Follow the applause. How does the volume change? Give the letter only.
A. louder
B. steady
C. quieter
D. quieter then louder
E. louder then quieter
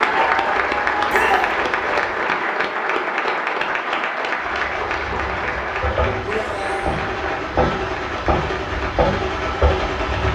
C.